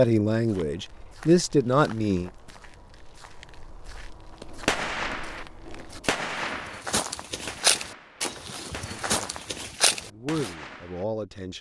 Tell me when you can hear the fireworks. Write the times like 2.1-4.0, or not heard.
4.5-11.1.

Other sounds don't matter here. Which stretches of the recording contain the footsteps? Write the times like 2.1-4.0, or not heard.
0.5-10.6.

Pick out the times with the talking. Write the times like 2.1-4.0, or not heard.
0.0-2.3, 9.0-11.5.